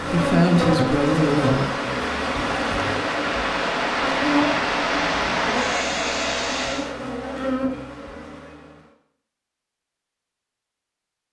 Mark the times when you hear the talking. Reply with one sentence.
The talking can be heard from 0.0 to 1.6 s.